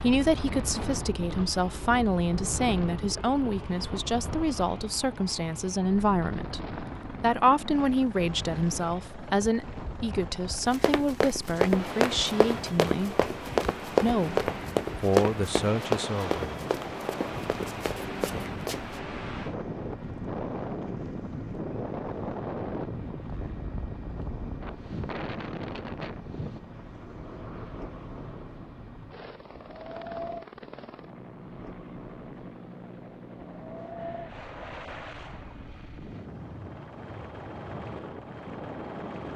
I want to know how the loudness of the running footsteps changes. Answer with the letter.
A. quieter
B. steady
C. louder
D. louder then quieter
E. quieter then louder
A.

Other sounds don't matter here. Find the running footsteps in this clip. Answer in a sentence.
You can hear the running footsteps from 10.7 to 19.0 s.